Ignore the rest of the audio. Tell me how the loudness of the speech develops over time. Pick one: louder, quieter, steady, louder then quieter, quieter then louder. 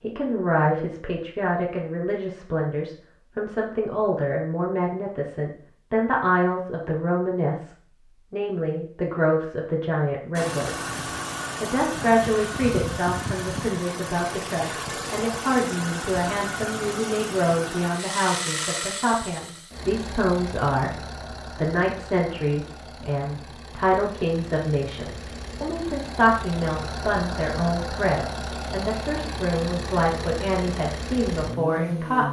steady.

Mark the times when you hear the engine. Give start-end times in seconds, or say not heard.
10.3-32.2.